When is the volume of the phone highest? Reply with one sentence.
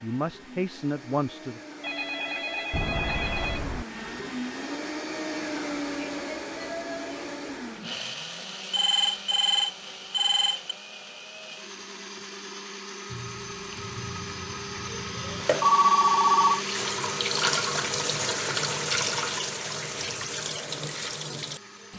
The volume of the phone peaks at 16 seconds.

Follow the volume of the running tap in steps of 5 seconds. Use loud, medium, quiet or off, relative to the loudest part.
off, off, quiet, loud, medium.